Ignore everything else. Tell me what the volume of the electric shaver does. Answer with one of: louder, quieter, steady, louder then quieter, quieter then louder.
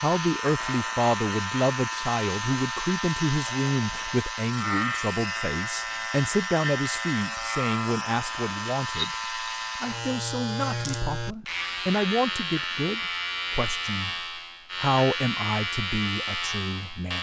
steady.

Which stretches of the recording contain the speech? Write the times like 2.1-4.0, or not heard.
0.0-17.1.